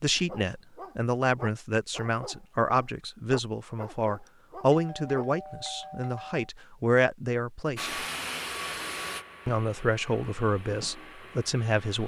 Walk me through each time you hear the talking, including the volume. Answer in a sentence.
You can hear the talking from 0.0 to 8.0 s, at a steady volume; and briefly from 9.4 to 12.0 s.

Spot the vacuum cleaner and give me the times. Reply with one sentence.
The vacuum cleaner can be heard from 7.8 to 12.0 s.